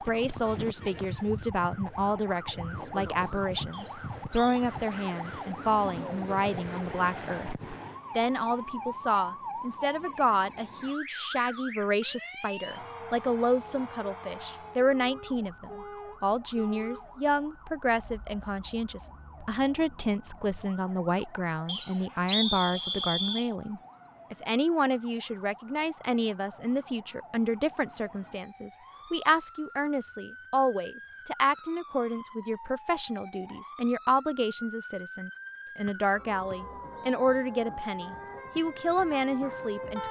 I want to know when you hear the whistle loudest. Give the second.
22 s.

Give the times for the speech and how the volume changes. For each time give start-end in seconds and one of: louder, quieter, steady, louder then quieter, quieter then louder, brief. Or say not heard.
0.1-40.0 steady.